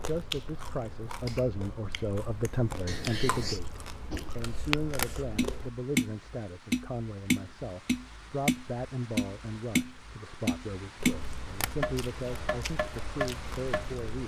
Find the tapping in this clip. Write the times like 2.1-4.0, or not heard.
4.1-13.8.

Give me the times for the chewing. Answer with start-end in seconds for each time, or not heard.
0.0-5.7, 10.9-14.2.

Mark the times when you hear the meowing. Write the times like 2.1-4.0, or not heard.
2.9-3.6.